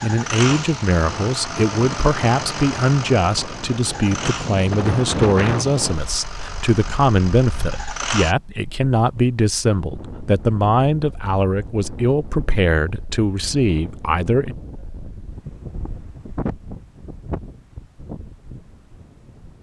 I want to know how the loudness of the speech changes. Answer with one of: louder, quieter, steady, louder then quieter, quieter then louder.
steady.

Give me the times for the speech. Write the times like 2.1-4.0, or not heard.
0.0-14.6.